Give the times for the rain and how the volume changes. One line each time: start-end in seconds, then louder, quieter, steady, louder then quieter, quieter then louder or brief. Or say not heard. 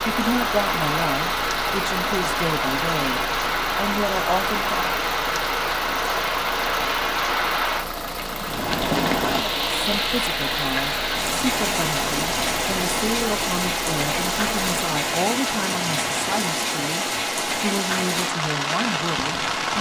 0.0-19.7 steady.